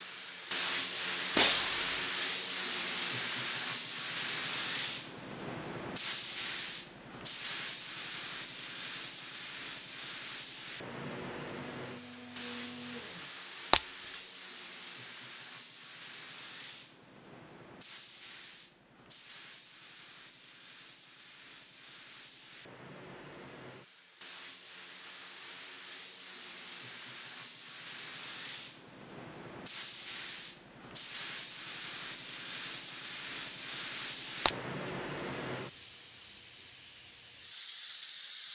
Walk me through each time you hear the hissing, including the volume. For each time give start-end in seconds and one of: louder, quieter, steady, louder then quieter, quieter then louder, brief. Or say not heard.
0.0-38.4 quieter then louder.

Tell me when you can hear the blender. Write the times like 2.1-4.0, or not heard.
10.8-13.3.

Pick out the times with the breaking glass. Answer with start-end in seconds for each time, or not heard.
1.4-1.9, 13.7-14.2, 34.5-34.9.